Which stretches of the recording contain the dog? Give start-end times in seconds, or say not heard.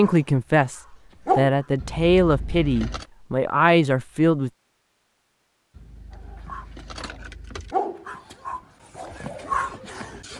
0.0-1.7, 6.1-10.3.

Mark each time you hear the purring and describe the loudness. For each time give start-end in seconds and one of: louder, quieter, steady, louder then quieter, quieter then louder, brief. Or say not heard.
not heard.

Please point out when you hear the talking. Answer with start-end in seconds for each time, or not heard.
0.0-4.5.